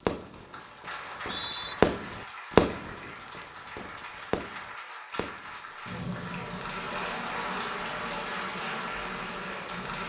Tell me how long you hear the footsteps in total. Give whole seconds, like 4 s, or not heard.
not heard.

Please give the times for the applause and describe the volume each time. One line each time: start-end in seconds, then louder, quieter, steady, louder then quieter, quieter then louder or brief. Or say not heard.
0.0-10.0 louder.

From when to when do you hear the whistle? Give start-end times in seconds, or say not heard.
1.0-1.8.